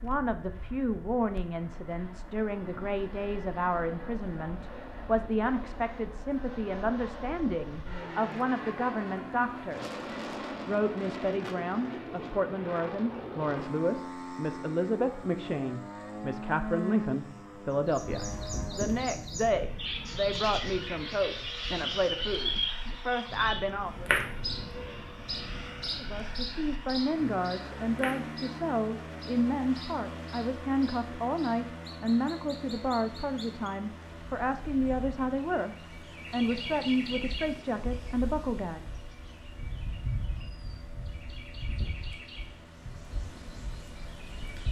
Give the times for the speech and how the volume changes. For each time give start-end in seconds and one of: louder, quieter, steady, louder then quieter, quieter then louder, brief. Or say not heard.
0.0-10.0 steady
10.7-24.1 steady
25.9-38.9 steady.